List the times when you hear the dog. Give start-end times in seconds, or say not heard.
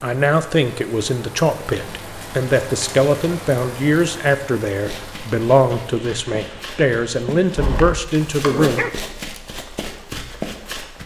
7.5-9.1.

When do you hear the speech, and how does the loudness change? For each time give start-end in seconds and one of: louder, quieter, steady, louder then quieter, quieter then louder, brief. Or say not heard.
0.0-8.8 steady.